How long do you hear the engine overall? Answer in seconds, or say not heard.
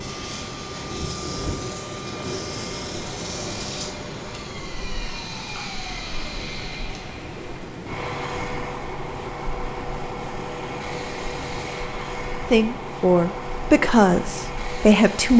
15 s.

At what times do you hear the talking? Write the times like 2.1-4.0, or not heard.
12.5-15.3.